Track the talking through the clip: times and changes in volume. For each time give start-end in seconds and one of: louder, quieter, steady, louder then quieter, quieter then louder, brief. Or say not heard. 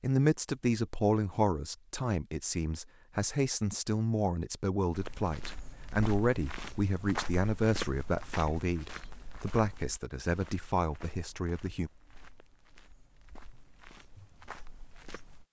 0.0-11.9 steady.